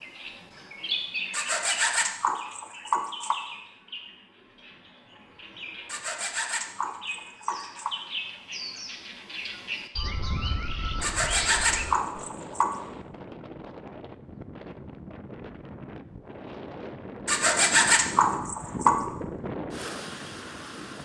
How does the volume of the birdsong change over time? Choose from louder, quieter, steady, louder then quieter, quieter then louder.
quieter then louder.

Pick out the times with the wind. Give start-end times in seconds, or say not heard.
10.0-21.0.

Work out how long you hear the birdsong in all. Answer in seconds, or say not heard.
12 s.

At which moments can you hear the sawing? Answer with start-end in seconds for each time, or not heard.
1.3-3.4, 5.8-7.9, 11.0-12.8, 17.2-19.0.